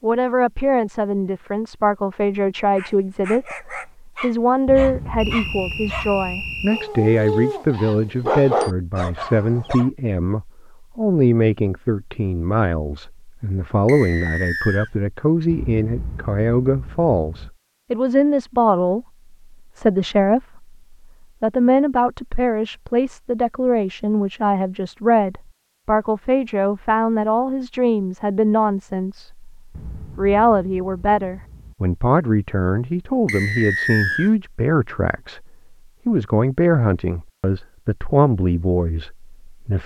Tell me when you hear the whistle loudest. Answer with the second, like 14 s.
34 s.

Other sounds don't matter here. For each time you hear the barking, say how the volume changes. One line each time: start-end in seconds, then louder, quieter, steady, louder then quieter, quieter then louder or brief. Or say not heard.
2.8-9.9 louder.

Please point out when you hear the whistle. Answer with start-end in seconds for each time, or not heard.
5.2-6.9, 13.8-14.9, 33.2-34.3.